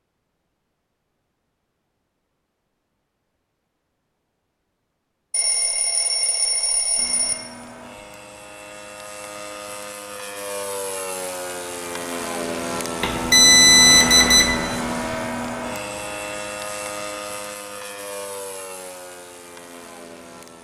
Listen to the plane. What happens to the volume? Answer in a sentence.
The loudness of the plane goes up, then down.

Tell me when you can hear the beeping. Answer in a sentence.
The beeping can be heard from 5.3 to 7.3 s and from 13.0 to 14.6 s.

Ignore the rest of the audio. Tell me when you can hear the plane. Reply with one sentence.
The plane can be heard from 7.0 to 20.5 s.